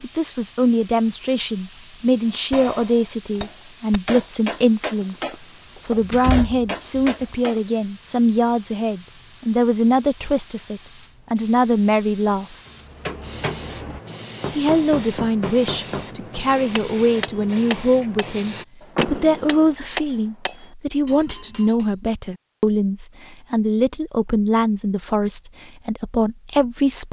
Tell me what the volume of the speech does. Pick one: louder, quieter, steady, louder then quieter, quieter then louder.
steady.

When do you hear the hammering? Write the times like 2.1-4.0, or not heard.
2.5-7.6, 12.7-21.9.